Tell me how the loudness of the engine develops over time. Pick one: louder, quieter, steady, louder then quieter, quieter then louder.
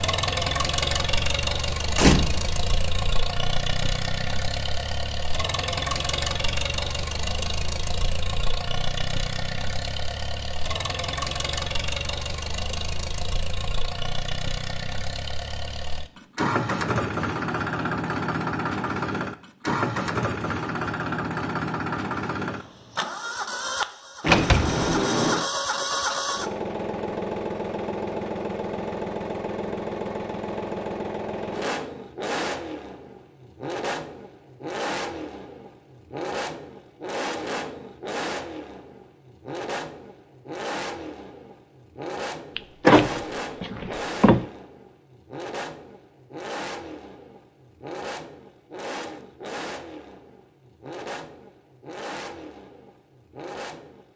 quieter.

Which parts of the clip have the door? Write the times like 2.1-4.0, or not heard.
1.9-2.5, 24.2-25.4, 42.5-44.5.